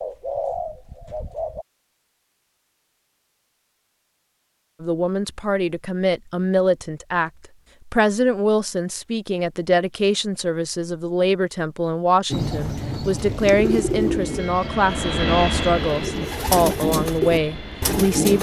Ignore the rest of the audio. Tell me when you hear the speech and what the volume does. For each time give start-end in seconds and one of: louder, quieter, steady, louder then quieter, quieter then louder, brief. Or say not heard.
4.8-18.3 steady.